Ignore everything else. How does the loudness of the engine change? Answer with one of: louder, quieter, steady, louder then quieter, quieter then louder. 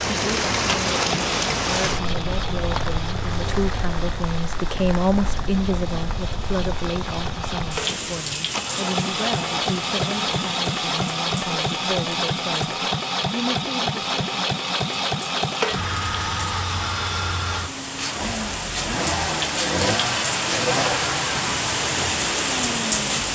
louder.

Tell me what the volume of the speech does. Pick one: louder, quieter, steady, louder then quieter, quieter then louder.
louder then quieter.